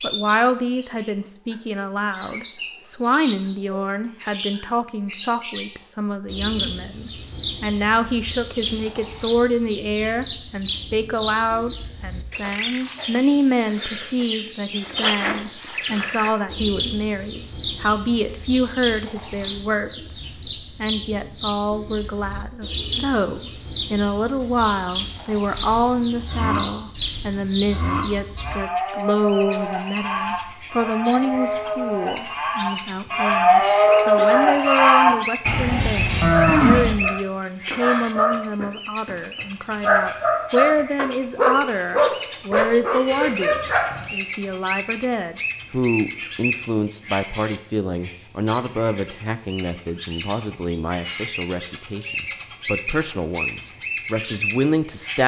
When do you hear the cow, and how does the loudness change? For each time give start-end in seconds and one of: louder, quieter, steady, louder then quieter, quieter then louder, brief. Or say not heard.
25.5-37.0 louder.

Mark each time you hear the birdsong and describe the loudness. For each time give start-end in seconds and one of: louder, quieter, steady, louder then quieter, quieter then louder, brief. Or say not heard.
0.0-55.2 steady.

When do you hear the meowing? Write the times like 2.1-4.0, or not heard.
not heard.